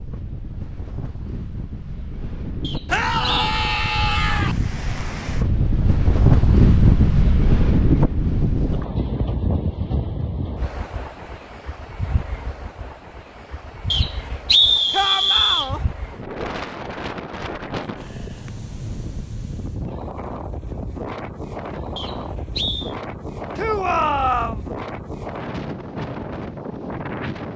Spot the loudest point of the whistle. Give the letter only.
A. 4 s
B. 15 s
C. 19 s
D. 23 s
B.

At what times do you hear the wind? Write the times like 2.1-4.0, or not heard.
0.0-27.5.